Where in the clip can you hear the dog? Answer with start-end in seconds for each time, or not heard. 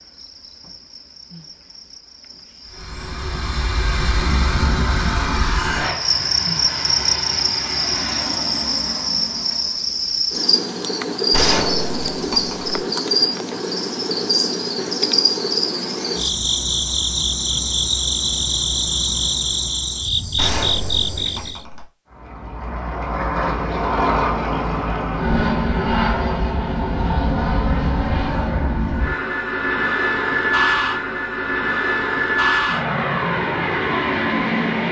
not heard.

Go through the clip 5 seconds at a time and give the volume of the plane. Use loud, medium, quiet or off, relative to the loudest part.
medium, medium, off, off, loud, loud, loud.